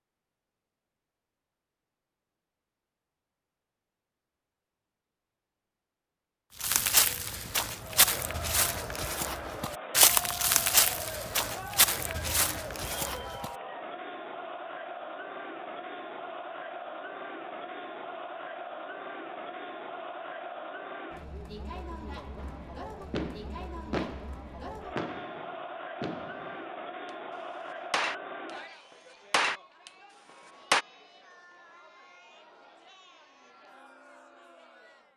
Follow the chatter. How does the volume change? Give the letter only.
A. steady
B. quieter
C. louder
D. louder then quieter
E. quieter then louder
B.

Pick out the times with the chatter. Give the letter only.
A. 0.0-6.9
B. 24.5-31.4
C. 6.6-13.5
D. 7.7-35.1
D.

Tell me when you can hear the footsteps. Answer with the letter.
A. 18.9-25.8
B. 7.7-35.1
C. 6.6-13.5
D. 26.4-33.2
C.